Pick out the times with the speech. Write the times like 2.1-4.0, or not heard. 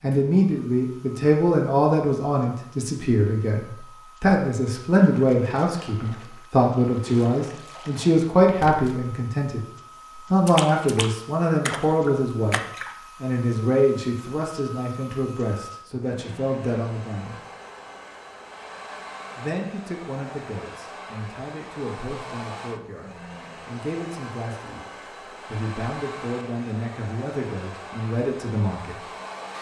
0.0-9.6, 10.3-12.6, 13.2-17.4, 19.4-29.1.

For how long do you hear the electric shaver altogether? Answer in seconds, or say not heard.
not heard.